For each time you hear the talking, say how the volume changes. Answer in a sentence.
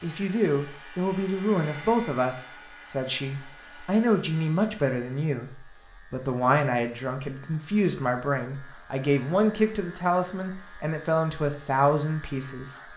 The talking can be heard from 0.0 to 12.9 s, at a steady volume.